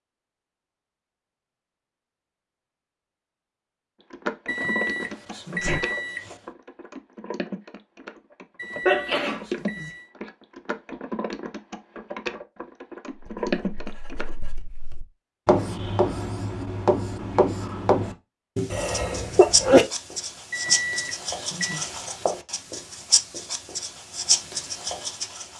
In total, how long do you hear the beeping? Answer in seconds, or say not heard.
5 s.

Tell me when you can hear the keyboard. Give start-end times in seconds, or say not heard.
4.1-14.3.